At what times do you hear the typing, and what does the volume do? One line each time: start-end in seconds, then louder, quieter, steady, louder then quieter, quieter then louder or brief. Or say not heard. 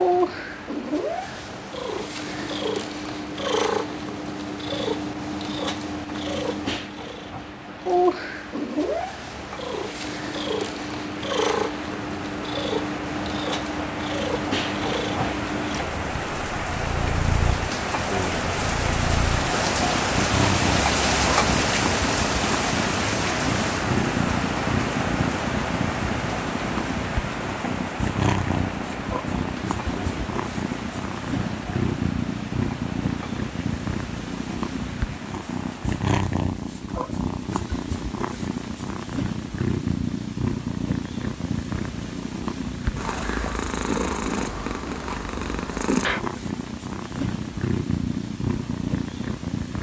not heard.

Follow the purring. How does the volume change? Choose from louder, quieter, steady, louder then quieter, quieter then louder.
steady.